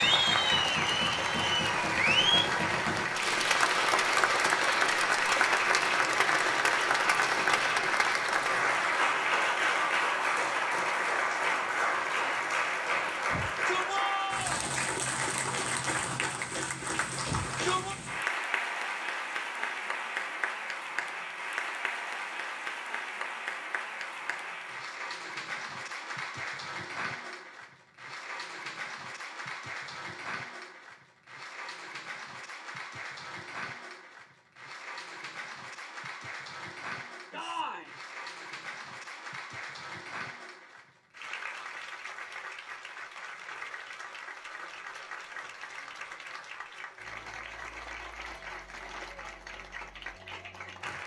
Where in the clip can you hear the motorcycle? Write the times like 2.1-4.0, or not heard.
not heard.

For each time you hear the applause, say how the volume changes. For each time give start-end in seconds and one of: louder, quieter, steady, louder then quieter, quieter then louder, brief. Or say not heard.
0.0-51.0 quieter.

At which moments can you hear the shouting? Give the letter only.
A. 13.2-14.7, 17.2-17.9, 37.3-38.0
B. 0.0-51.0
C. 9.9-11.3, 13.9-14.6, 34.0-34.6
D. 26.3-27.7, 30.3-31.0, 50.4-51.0
A.